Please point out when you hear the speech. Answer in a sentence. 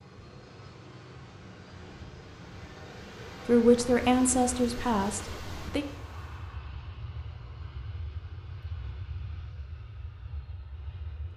You can hear the speech from 3.5 to 5.8 s.